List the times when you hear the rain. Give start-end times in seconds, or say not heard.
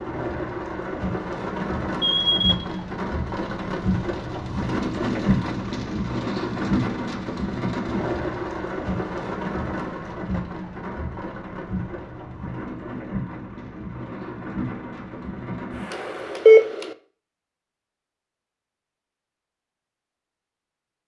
0.0-16.6.